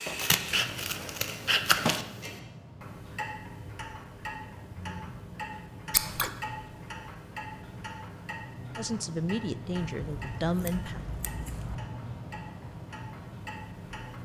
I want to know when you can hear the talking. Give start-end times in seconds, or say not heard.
8.8-11.1.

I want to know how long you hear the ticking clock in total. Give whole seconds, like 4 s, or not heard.
14 s.